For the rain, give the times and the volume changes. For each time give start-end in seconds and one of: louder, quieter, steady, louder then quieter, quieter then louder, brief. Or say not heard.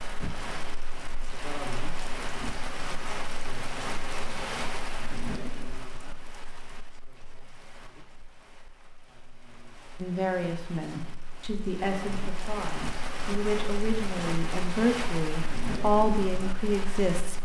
0.0-17.4 quieter then louder.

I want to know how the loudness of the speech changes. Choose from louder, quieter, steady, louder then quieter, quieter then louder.
louder.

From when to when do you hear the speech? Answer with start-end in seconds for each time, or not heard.
10.0-17.4.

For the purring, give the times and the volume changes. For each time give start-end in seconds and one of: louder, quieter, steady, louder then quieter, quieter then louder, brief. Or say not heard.
not heard.